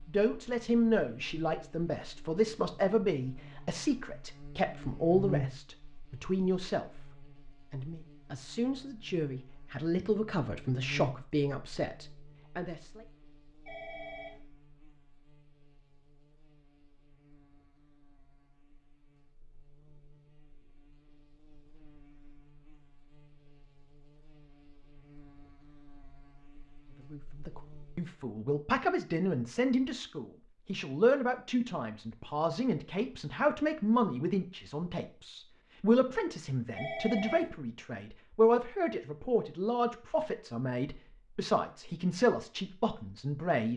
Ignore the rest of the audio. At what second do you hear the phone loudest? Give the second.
37 s.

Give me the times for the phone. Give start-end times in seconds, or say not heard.
13.7-14.4, 36.8-37.5.